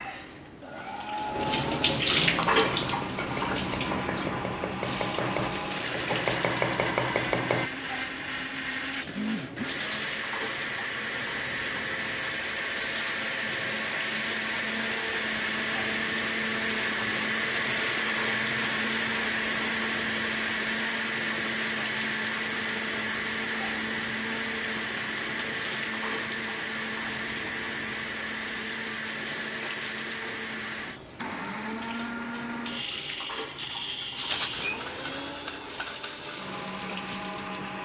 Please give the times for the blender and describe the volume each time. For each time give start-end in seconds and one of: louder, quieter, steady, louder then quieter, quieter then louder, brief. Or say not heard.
0.5-37.8 louder then quieter.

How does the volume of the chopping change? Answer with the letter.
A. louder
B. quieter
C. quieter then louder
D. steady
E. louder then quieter
A.